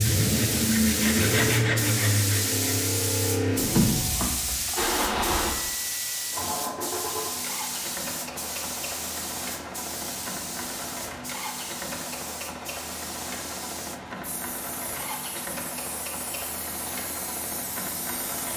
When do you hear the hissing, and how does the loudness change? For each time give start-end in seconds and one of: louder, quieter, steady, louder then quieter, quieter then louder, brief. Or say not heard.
0.0-18.5 quieter.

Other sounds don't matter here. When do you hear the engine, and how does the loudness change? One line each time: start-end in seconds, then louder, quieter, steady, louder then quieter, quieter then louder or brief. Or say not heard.
0.0-18.5 quieter.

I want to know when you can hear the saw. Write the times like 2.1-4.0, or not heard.
0.0-2.6.